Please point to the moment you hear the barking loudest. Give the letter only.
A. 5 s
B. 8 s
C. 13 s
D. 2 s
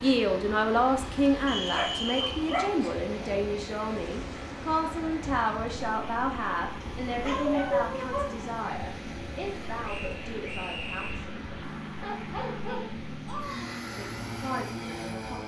B.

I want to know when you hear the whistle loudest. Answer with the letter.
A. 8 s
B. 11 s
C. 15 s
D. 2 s
D.